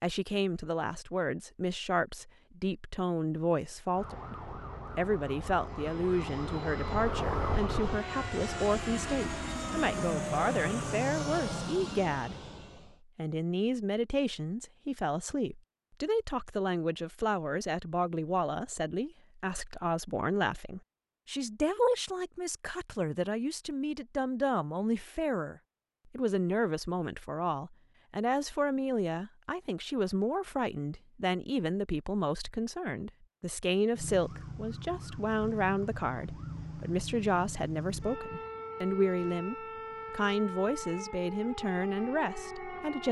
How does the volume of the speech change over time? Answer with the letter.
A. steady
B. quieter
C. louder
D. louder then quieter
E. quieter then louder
A.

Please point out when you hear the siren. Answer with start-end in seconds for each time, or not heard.
3.9-11.6, 33.9-43.0.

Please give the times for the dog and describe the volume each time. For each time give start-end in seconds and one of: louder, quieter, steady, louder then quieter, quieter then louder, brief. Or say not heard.
not heard.